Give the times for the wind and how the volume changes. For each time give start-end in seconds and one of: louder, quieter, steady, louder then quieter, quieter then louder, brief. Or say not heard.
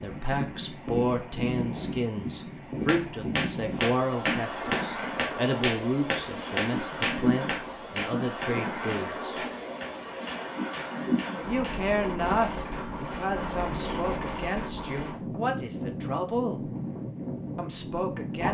0.0-18.4 steady.